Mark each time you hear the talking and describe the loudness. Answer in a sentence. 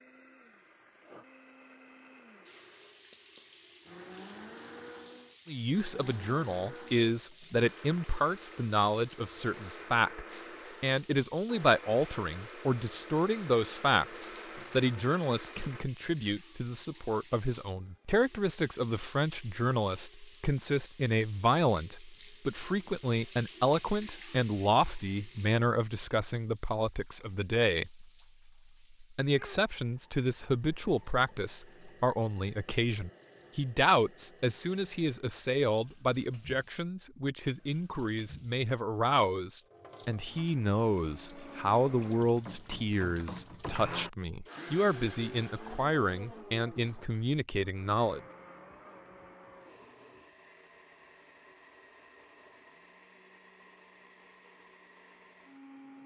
The talking can be heard from 5.5 to 28.1 s, at a steady volume; and from 29.0 to 48.2 s, at a steady volume.